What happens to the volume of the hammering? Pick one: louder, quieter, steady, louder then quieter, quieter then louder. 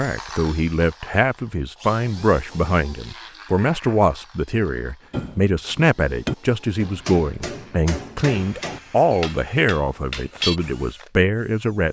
quieter.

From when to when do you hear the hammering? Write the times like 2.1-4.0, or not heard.
5.1-10.6.